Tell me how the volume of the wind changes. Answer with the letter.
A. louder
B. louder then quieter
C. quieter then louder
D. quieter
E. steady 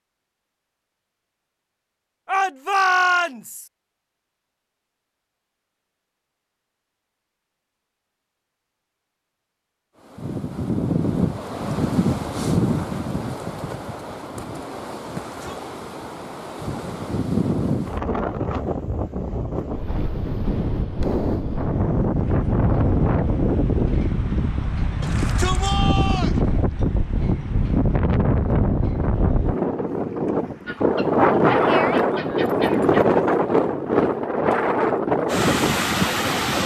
A.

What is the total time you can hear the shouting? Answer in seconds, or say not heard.
3 s.